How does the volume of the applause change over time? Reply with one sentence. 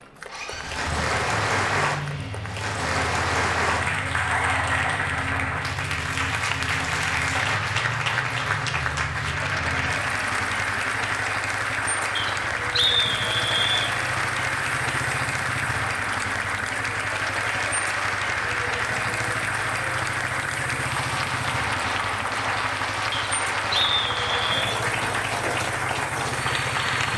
The loudness of the applause stays about the same.